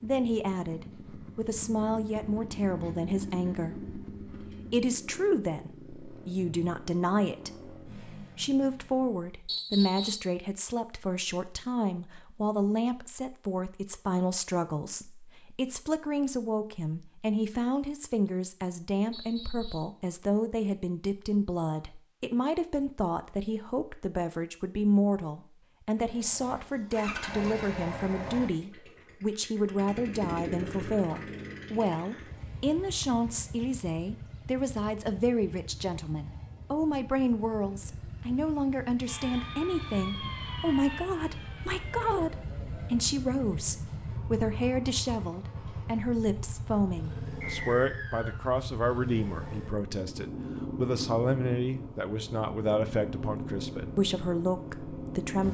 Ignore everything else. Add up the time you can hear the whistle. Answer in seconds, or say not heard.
3 s.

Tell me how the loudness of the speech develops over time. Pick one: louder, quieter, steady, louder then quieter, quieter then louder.
steady.